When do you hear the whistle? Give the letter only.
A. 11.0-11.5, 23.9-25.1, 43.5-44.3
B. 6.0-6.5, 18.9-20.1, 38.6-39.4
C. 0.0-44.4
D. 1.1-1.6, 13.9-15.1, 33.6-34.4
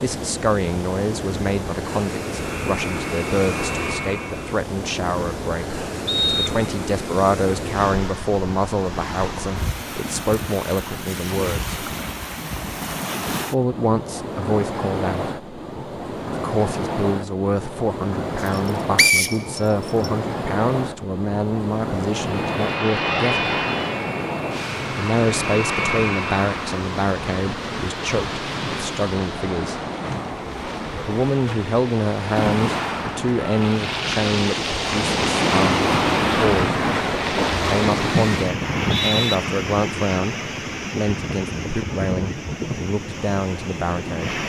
B.